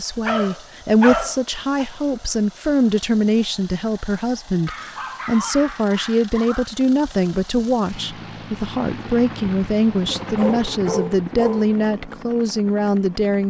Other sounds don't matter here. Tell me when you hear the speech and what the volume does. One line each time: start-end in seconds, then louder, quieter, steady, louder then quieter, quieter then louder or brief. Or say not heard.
0.0-13.4 steady.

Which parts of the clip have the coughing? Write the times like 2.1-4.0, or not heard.
not heard.